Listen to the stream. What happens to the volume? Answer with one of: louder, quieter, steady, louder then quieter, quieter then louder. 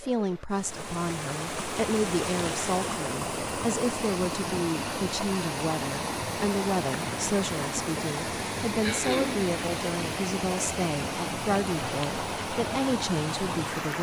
steady.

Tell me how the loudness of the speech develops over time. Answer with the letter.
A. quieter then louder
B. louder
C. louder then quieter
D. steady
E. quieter
D.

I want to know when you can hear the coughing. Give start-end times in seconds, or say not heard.
8.8-9.5.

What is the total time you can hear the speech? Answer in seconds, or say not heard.
14 s.